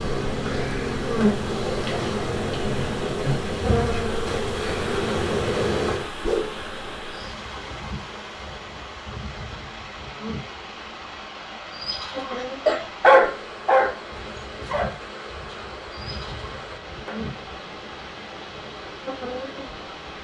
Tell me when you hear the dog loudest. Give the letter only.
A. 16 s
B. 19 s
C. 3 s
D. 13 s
D.